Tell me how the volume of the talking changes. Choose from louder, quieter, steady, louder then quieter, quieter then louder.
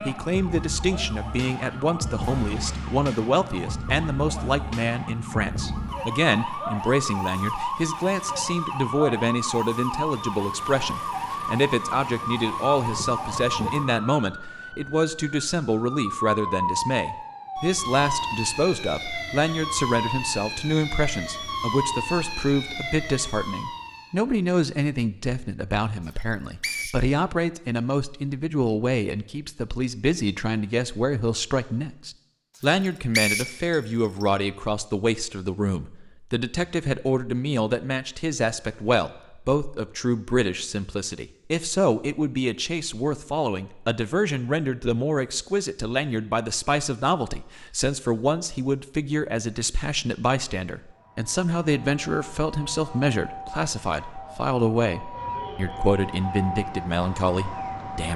steady.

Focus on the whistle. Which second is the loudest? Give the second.
33 s.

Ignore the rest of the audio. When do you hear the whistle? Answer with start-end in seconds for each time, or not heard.
26.1-27.0, 32.6-34.2.